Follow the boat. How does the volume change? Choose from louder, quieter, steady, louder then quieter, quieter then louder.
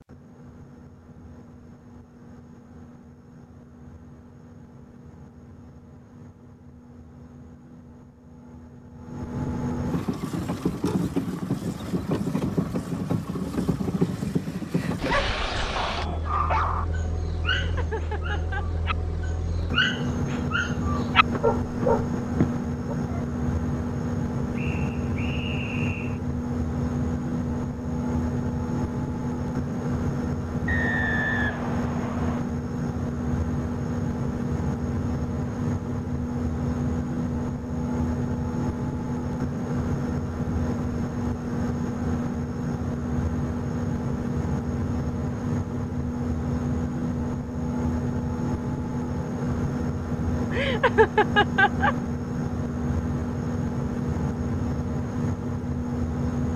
louder.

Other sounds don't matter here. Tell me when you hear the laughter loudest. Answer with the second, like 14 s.
51 s.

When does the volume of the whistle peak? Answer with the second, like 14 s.
31 s.